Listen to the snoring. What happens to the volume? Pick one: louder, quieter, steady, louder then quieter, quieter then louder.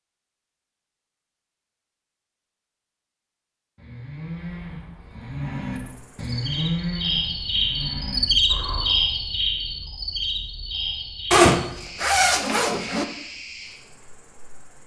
louder then quieter.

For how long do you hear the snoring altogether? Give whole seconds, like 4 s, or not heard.
5 s.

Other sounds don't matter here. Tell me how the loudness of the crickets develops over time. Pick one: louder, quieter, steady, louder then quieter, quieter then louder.
louder then quieter.